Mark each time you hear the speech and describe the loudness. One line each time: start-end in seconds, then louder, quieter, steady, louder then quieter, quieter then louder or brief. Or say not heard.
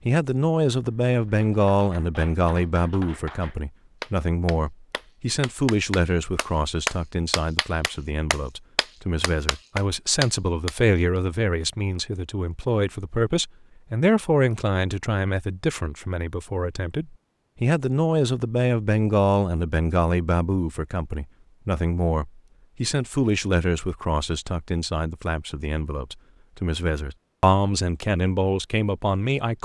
0.1-29.6 steady.